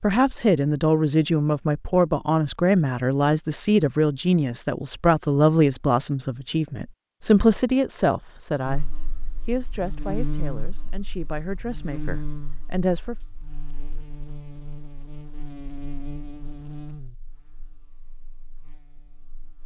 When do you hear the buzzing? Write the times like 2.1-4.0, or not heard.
8.7-19.6.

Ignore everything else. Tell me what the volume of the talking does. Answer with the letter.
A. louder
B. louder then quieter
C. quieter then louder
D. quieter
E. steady
D.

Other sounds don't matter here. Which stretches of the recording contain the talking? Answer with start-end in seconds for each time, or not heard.
0.0-8.8, 9.4-13.2.